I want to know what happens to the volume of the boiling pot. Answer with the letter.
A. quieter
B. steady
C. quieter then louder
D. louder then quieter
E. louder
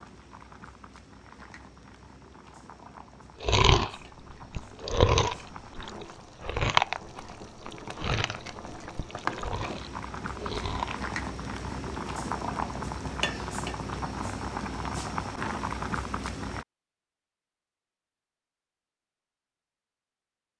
E.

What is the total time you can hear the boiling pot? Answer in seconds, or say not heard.
17 s.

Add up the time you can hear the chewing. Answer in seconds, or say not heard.
8 s.